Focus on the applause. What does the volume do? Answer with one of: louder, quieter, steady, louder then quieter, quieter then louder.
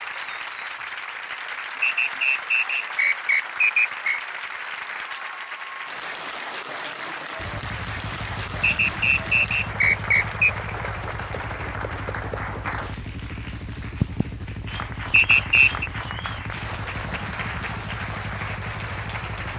steady.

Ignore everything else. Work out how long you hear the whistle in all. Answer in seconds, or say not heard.
5 s.